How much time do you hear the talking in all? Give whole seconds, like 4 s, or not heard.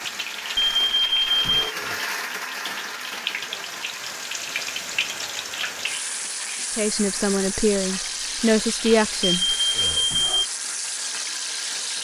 3 s.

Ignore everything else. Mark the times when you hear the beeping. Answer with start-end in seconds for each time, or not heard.
0.6-1.8, 9.3-10.4.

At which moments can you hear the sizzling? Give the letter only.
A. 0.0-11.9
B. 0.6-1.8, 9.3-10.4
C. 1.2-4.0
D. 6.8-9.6
A.